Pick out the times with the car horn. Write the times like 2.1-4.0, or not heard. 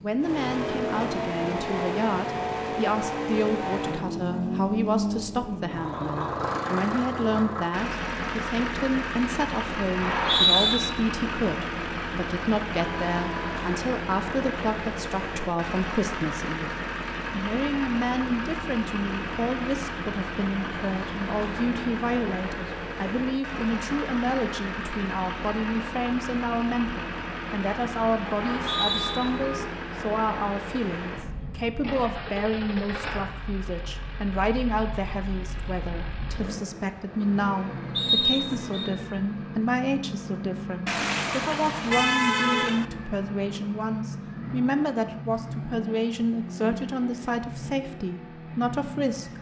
12.9-13.7, 28.2-29.7, 40.9-42.9.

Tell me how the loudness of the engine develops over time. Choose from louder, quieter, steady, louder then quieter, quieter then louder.
quieter.